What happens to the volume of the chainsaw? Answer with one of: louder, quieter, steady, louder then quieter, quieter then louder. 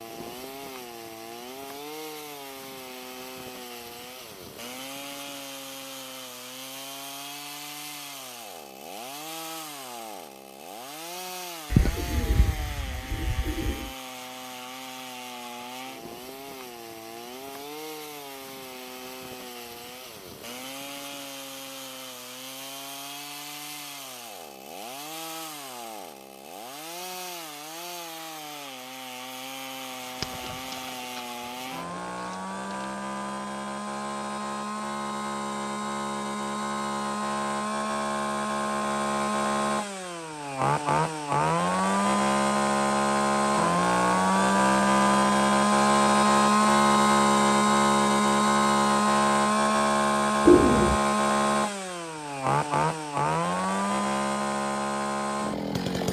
louder.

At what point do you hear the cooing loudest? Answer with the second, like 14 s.
51 s.